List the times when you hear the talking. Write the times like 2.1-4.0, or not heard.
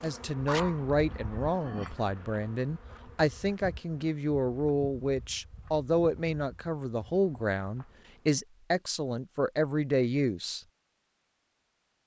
0.0-10.6.